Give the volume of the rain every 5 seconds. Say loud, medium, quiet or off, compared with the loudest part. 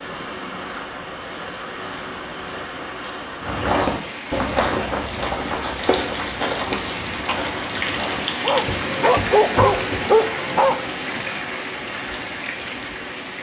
medium, loud, loud.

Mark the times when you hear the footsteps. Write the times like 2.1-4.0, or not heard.
3.4-10.1.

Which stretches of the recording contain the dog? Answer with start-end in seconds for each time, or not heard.
8.4-10.9.